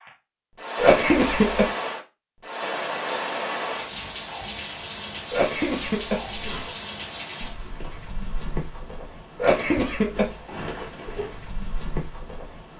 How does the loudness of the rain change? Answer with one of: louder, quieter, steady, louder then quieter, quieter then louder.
quieter.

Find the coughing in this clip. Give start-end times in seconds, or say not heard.
0.8-1.7, 5.3-6.7, 9.3-10.4.